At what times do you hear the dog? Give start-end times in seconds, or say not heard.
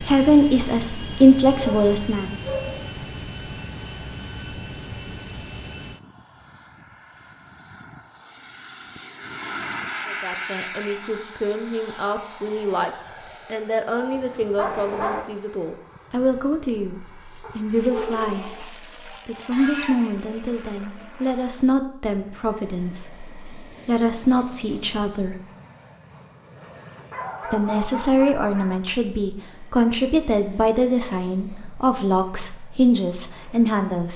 1.6-3.0, 14.0-15.2, 17.4-18.9, 27.1-28.8.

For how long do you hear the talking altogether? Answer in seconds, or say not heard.
24 s.